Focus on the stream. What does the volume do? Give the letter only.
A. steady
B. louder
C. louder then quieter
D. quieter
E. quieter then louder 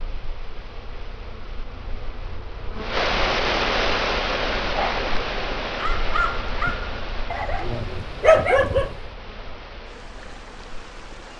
C.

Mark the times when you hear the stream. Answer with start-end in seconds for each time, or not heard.
0.0-11.3.